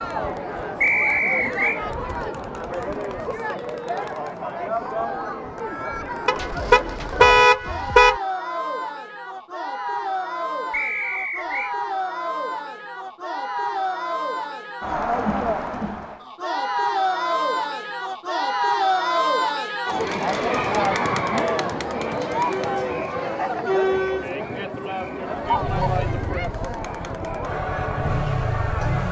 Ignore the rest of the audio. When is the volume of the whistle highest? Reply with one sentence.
The volume of the whistle peaks at 1 second.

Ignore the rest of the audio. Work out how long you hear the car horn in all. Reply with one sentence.
The car horn can be heard for 2 seconds in total.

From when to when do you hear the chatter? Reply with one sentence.
The chatter can be heard from 0.0 to 29.0 s.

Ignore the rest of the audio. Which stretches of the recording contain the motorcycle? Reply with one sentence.
The motorcycle can be heard from 25.3 to 29.0 s.